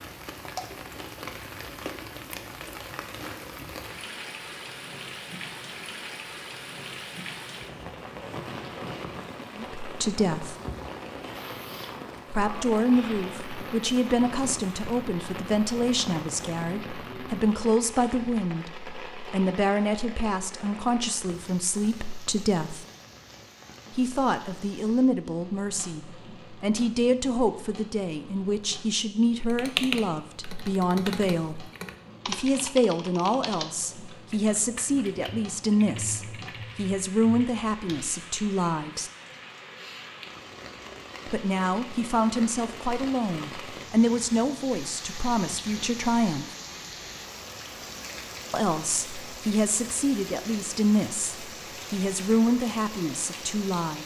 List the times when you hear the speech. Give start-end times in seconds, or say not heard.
9.6-10.6, 12.3-22.9, 23.9-39.1, 41.2-46.5, 48.5-54.0.